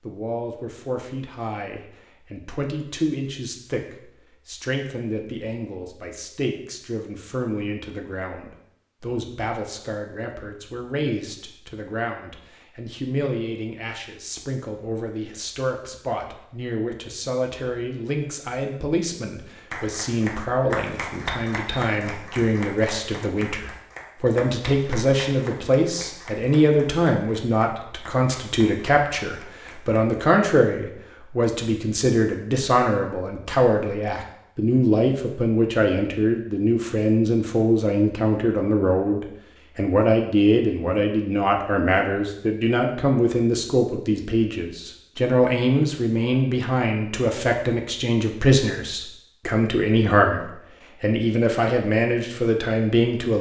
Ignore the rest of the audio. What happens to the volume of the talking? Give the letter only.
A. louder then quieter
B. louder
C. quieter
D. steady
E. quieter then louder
B.